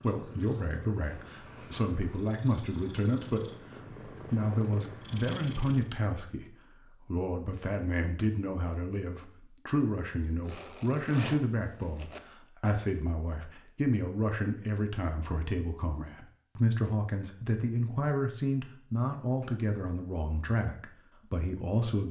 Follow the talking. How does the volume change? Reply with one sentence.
The loudness of the talking stays about the same.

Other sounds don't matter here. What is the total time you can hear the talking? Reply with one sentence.
You can hear the talking for 22 seconds altogether.